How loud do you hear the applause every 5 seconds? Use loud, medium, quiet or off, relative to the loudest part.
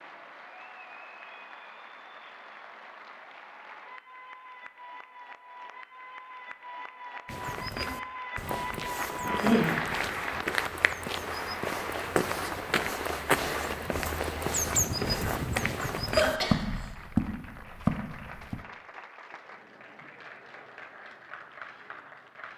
medium, loud, loud, medium, medium.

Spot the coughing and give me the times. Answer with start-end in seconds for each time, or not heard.
9.2-9.8, 16.1-16.9.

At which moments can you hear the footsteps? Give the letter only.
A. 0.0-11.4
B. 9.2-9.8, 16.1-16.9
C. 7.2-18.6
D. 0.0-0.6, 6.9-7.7
C.